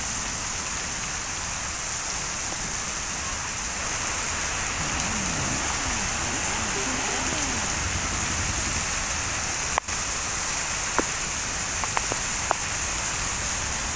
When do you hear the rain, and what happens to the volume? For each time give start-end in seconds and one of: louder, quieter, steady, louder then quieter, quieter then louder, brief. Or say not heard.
0.0-13.9 steady.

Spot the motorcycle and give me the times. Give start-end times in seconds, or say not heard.
4.8-8.8.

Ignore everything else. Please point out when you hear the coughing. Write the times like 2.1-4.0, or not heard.
not heard.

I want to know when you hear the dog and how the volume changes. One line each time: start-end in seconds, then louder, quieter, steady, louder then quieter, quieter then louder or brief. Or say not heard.
not heard.